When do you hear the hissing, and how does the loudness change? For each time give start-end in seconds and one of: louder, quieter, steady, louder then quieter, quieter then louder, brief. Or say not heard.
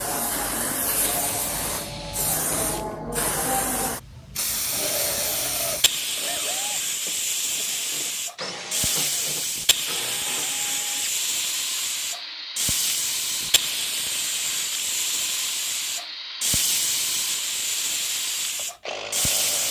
0.0-19.6 steady.